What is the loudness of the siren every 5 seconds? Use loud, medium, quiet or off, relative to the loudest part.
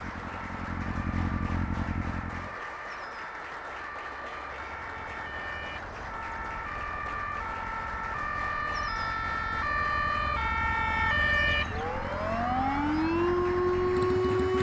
quiet, medium, loud.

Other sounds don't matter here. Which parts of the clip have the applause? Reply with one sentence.
The applause can be heard from 0.0 to 14.5 s.